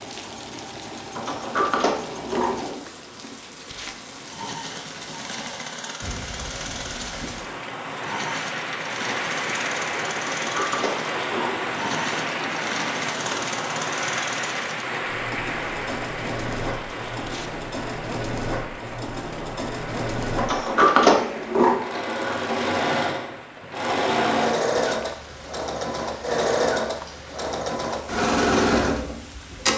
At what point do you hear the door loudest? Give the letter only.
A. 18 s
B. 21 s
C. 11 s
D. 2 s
B.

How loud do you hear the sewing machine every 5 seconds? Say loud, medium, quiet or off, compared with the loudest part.
quiet, medium, medium, medium, loud, loud.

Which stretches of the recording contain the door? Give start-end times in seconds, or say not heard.
1.1-2.9, 10.4-11.8, 20.4-21.8.